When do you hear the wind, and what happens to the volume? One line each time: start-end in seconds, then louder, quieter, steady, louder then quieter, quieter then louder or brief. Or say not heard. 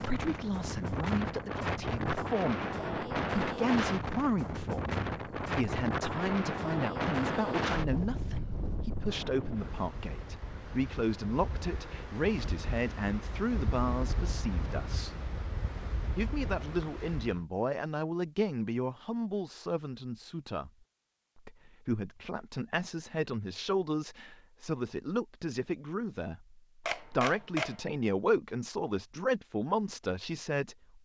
0.0-17.4 quieter.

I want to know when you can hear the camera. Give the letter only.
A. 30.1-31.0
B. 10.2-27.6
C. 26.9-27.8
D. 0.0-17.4
C.